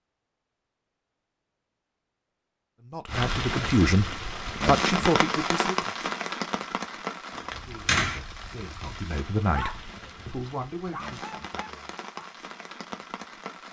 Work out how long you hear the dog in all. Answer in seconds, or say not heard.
2 s.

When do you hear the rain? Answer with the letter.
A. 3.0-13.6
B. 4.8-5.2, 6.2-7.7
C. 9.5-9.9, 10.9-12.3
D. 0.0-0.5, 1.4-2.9
A.